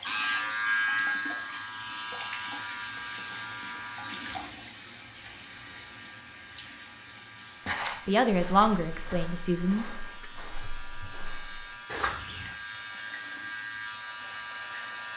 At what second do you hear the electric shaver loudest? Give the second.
1 s.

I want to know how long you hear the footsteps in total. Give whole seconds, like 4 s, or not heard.
5 s.